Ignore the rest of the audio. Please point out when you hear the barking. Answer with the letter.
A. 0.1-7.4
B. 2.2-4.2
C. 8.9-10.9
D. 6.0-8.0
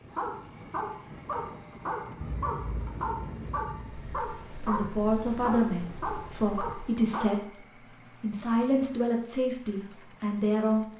A.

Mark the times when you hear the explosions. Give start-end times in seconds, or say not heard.
2.2-4.2.